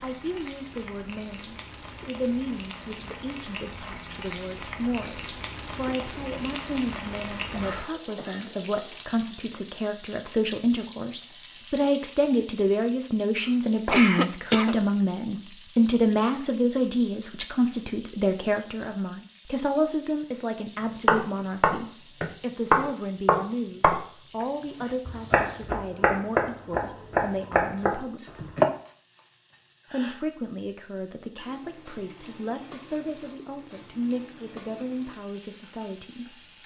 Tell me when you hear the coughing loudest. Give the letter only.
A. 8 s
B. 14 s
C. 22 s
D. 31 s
B.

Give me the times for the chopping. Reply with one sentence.
You can hear the chopping from 21.1 to 28.6 s.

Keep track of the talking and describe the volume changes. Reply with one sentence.
The loudness of the talking goes up, then down.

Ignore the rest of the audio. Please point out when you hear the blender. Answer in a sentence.
The blender can't be heard in this clip.